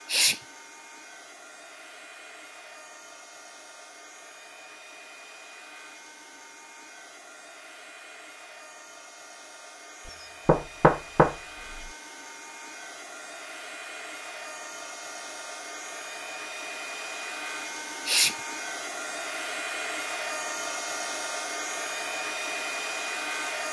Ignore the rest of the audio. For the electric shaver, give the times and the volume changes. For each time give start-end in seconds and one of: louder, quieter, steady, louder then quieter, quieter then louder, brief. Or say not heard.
not heard.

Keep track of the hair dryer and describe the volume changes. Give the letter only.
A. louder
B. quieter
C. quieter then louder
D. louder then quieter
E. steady
A.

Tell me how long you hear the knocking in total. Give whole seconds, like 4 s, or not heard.
2 s.